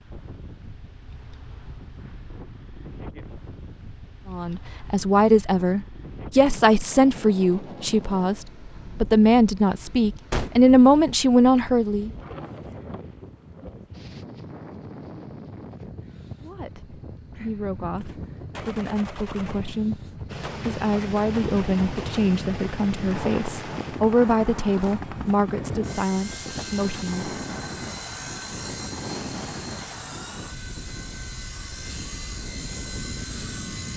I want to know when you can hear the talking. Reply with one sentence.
The talking can be heard from 4.3 to 12.1 s and from 16.4 to 27.2 s.